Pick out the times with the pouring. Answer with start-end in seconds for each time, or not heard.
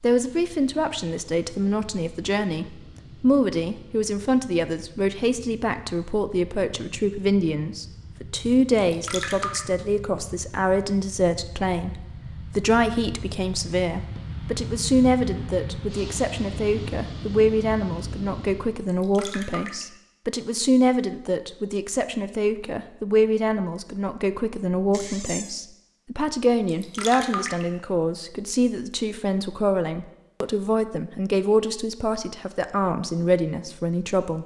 8.8-9.6, 18.9-19.9, 26.6-27.6.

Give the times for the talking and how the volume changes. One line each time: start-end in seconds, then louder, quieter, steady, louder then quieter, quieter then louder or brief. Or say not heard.
0.0-34.4 steady.